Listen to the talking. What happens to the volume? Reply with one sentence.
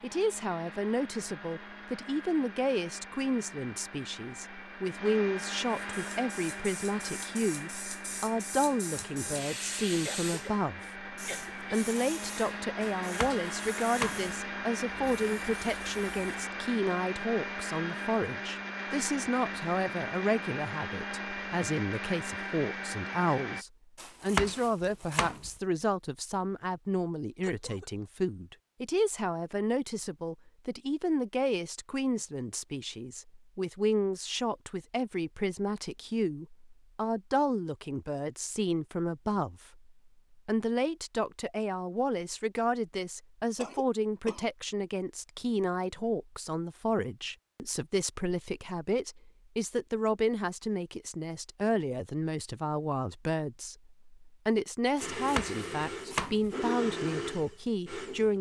The loudness of the talking stays about the same.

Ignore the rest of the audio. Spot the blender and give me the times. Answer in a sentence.
The blender can be heard from 0.0 to 23.6 s and from 55.0 to 58.3 s.